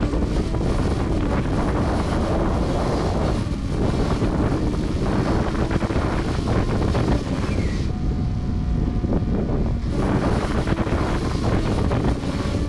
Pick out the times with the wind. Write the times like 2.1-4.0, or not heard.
0.0-12.6.